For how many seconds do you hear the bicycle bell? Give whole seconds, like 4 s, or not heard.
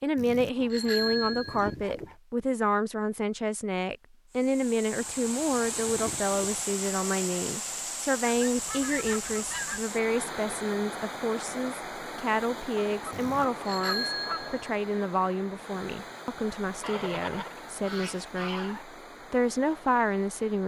3 s.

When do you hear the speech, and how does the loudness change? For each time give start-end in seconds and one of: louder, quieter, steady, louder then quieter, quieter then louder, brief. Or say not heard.
0.0-20.6 steady.